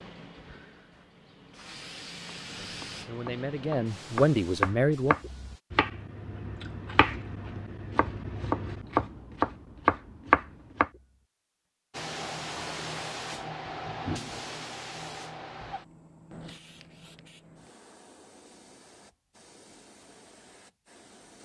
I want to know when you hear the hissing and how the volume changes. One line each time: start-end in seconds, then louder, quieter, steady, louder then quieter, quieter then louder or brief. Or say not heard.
0.0-5.6 louder then quieter
11.9-21.3 quieter.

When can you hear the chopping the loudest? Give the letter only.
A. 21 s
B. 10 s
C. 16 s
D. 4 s
B.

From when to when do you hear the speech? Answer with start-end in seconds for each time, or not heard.
2.5-5.2.